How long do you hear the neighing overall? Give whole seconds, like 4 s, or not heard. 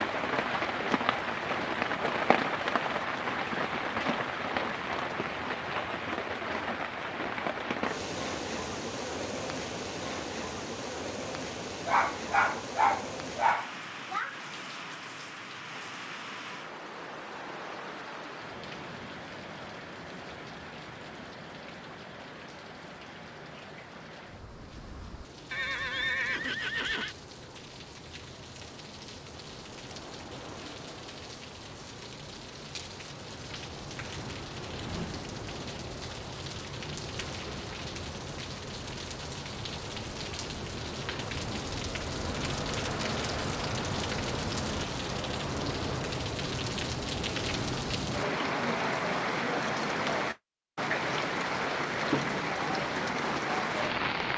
2 s.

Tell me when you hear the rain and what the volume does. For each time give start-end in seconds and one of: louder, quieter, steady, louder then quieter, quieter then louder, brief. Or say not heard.
0.0-54.3 quieter then louder.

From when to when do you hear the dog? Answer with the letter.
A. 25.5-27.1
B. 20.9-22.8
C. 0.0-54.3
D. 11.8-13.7
D.